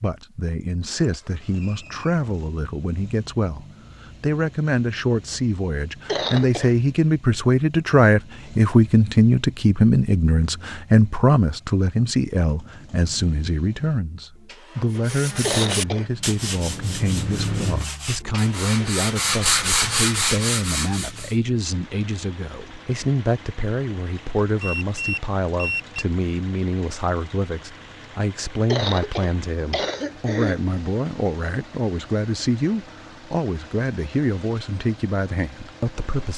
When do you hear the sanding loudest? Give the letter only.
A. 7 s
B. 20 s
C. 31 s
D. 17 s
B.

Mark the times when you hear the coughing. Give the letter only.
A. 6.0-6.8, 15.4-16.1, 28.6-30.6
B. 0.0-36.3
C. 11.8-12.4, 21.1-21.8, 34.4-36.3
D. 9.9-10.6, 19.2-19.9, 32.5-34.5
A.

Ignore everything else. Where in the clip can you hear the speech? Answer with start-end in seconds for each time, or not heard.
0.0-36.3.